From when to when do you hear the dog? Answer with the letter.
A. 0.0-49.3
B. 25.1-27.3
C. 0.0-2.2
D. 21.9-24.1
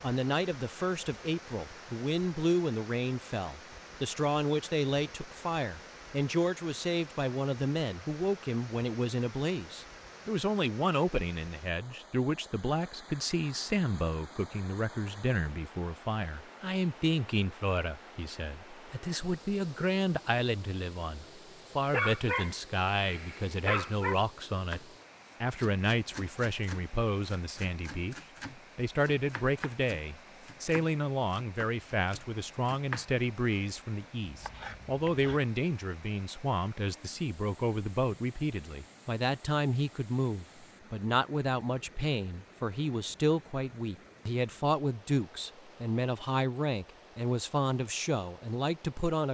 D.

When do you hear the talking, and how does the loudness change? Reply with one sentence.
The talking can be heard from 0.0 to 49.3 s, at a steady volume.